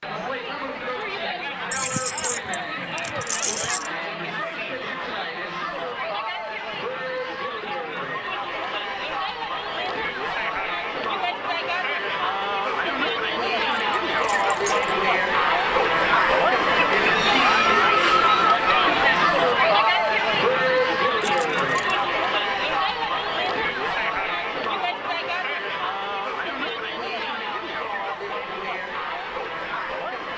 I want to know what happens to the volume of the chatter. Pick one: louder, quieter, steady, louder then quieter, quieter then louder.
louder then quieter.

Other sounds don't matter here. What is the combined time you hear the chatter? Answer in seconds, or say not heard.
30 s.